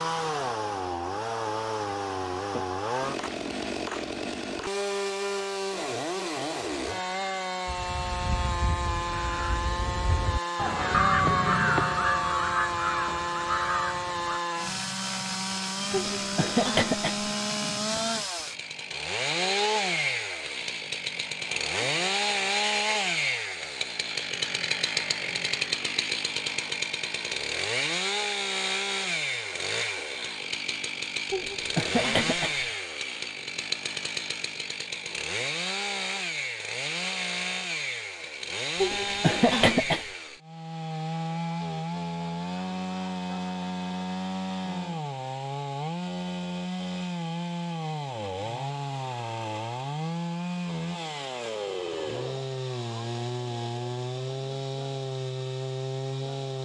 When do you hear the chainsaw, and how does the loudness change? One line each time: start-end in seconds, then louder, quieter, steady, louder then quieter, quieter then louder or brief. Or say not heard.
0.0-56.6 steady.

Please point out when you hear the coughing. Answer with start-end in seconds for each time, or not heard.
15.9-17.3, 31.3-32.6, 38.8-40.0.